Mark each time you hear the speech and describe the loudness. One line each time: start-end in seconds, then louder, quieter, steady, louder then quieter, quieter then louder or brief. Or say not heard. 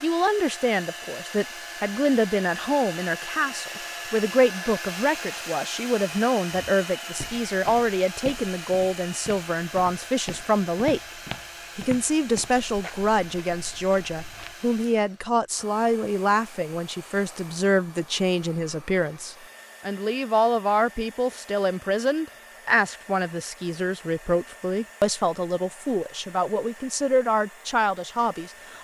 0.0-11.0 steady
11.8-28.7 steady.